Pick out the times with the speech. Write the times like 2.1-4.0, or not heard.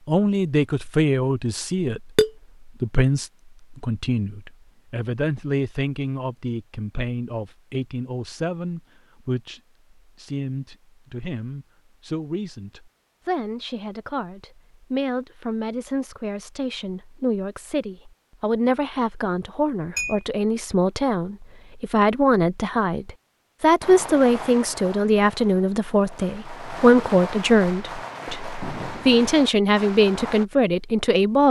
0.1-31.4.